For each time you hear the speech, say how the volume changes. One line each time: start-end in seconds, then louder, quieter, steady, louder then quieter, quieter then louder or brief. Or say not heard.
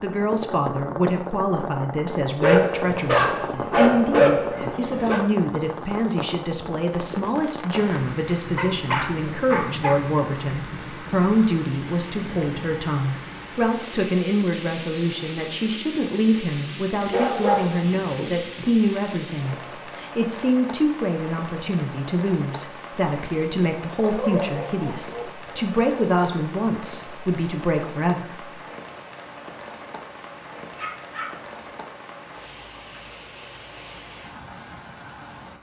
0.0-28.4 steady.